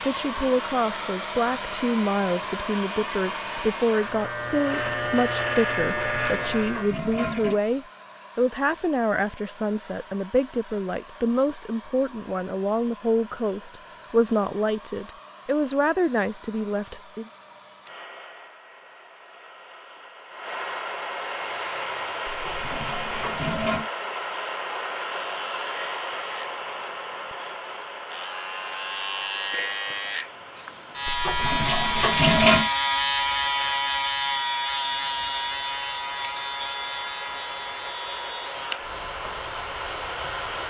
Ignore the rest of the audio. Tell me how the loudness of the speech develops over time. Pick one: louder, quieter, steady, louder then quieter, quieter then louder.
steady.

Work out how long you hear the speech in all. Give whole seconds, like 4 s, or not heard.
17 s.